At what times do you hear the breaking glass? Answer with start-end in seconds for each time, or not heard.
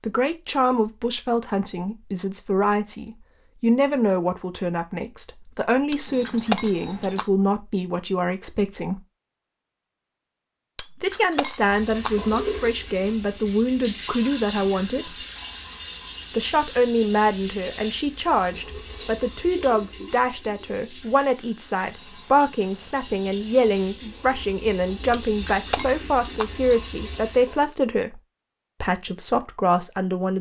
5.9-7.2, 10.8-12.6, 25.2-26.9.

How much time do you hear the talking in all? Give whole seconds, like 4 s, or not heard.
27 s.